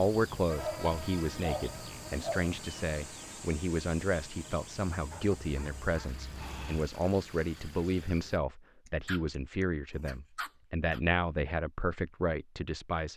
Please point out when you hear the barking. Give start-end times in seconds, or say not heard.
0.6-2.5, 5.1-7.0, 8.8-11.0.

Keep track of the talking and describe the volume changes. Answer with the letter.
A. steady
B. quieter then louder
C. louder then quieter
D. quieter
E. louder
A.